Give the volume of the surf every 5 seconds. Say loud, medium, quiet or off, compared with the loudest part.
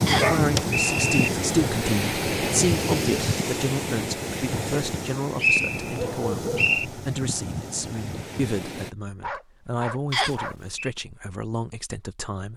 loud, medium, off.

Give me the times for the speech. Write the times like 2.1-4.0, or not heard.
0.1-12.5.